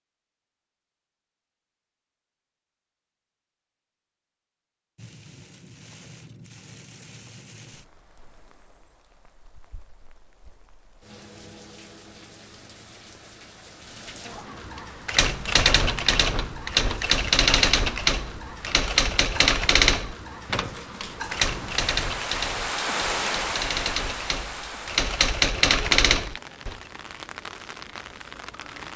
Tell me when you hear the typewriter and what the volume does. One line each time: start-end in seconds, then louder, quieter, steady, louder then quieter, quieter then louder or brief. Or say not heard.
15.1-26.8 quieter then louder.